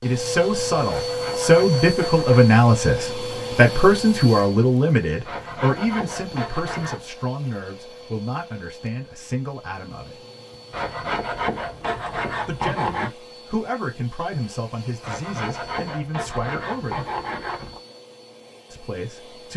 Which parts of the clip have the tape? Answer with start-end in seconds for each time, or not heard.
not heard.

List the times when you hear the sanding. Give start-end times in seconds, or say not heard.
0.8-2.5, 5.2-7.0, 10.7-13.2, 15.0-17.8.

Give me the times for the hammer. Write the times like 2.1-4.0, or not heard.
not heard.